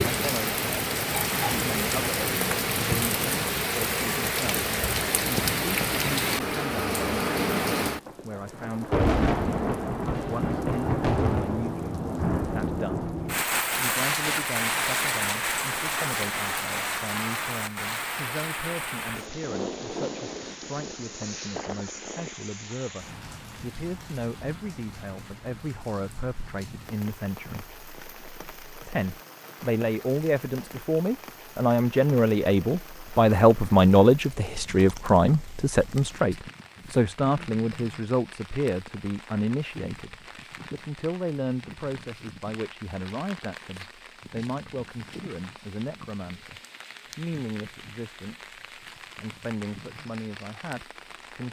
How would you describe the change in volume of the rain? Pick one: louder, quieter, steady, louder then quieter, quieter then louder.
quieter.